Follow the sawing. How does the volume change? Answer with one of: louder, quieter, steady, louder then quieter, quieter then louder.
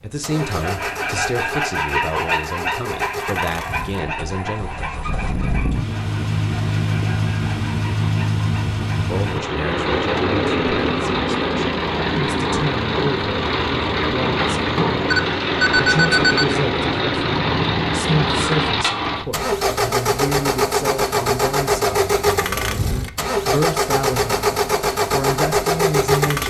quieter.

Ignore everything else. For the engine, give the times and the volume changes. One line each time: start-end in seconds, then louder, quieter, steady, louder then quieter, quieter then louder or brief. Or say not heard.
0.0-26.4 louder.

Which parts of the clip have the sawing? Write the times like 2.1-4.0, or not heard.
0.3-9.4.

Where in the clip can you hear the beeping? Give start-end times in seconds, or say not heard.
15.1-16.6.